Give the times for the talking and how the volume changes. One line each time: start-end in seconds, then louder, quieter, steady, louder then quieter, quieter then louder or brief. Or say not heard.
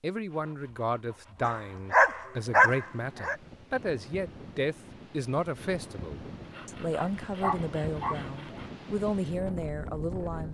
0.0-10.4 steady.